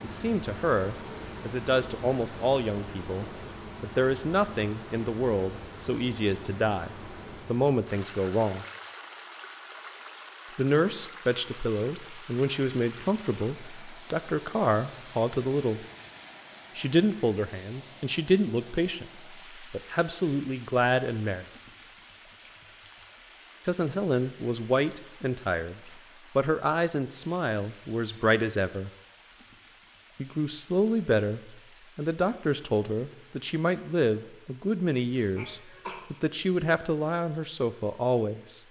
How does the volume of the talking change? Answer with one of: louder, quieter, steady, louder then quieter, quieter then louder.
steady.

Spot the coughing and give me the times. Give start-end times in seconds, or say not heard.
35.4-36.0.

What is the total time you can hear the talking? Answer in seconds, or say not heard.
32 s.